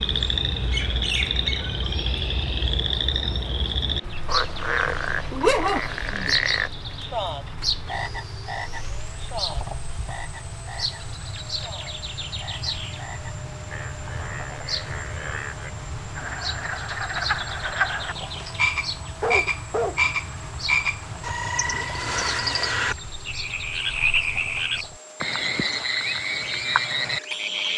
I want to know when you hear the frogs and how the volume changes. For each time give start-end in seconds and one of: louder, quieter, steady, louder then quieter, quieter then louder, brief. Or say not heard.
0.0-27.7 quieter then louder.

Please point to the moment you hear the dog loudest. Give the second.
6 s.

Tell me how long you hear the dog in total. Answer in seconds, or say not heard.
3 s.